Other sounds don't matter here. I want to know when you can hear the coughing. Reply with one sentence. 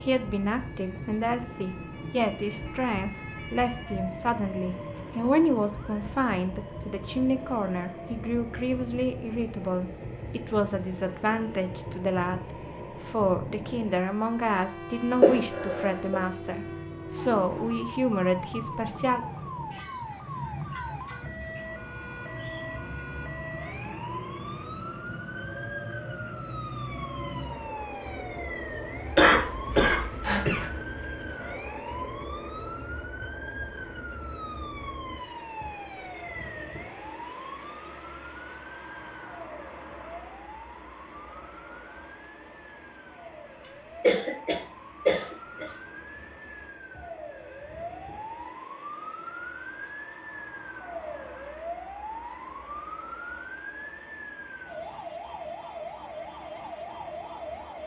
You can hear the coughing from 15.2 to 16.1 s, from 29.1 to 30.6 s and from 44.0 to 45.8 s.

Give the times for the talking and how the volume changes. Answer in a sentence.
You can hear the talking from 0.0 to 19.2 s, at a steady volume.